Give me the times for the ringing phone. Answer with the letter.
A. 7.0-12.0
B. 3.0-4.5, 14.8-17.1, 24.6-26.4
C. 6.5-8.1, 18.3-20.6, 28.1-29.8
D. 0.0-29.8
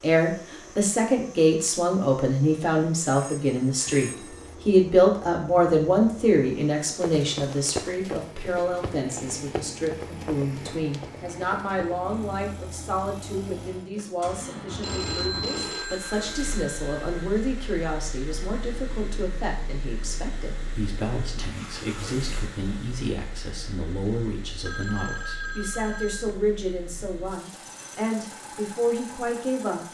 B.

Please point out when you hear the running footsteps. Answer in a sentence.
The running footsteps can be heard from 7.0 to 12.0 s.